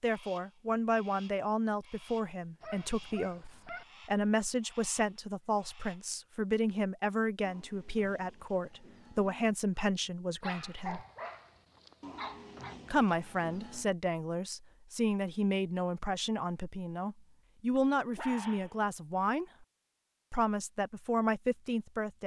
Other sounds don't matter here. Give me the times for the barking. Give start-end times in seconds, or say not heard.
2.6-3.9, 10.4-12.8, 17.9-18.8.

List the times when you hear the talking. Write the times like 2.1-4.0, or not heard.
0.0-11.1, 12.8-19.6, 20.3-22.2.